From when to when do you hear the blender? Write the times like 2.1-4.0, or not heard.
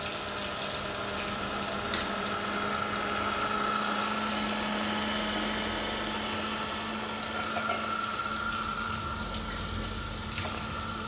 0.0-11.0.